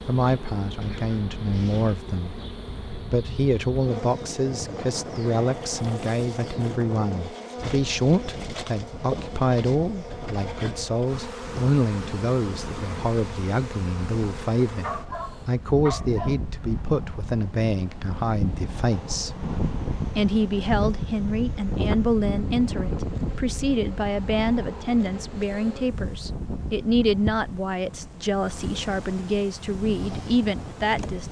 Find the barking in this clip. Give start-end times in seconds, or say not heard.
14.8-16.4.